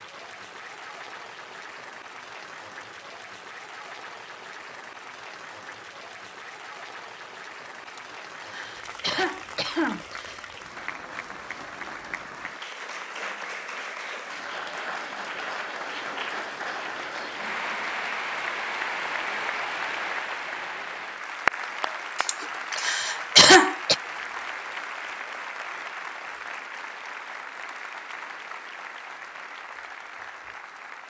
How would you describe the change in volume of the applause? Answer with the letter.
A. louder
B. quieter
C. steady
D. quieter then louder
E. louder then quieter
E.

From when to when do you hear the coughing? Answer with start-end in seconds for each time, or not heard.
7.8-10.5, 22.1-23.9.